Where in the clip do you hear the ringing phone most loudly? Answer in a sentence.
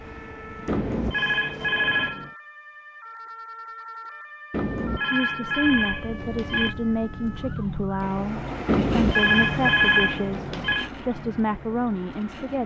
The volume of the ringing phone peaks at 10 seconds.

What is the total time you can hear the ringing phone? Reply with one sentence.
You can hear the ringing phone for 6 seconds altogether.